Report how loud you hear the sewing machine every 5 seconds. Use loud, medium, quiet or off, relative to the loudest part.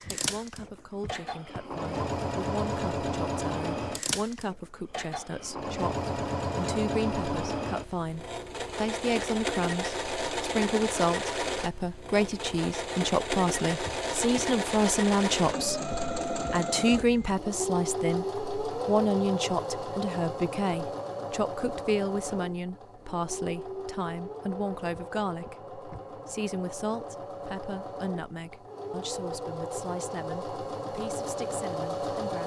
loud, loud, loud, loud, medium, medium, loud.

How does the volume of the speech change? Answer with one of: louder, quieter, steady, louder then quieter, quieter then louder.
louder then quieter.